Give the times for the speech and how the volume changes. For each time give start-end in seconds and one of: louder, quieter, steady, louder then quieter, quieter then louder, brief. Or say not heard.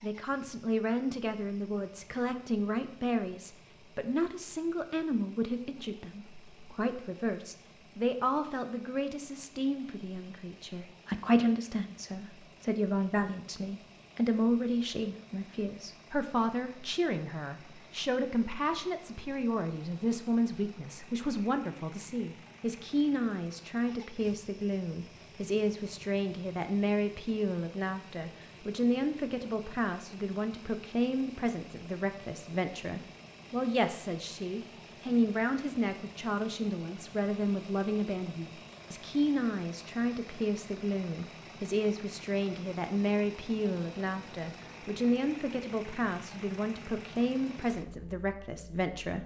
0.0-49.2 steady.